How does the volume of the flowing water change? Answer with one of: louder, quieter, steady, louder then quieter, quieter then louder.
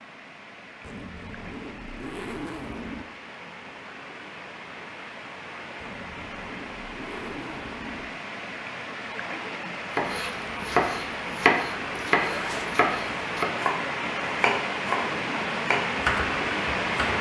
louder.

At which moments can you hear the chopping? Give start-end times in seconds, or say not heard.
9.9-17.1.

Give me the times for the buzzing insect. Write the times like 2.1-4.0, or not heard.
not heard.